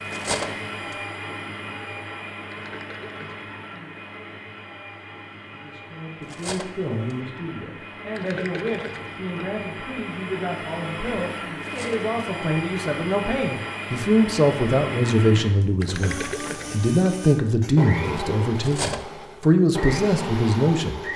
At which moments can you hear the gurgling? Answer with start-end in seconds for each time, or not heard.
2.5-3.8, 8.2-9.3, 15.8-16.9.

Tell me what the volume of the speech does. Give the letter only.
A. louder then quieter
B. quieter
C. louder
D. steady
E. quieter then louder
C.